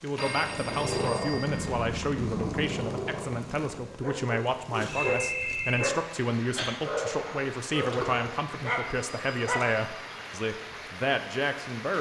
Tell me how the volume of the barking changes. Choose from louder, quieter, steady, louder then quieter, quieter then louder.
steady.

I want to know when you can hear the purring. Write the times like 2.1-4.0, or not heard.
0.2-3.7.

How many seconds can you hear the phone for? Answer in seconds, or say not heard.
4 s.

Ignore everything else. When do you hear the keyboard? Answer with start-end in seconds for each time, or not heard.
not heard.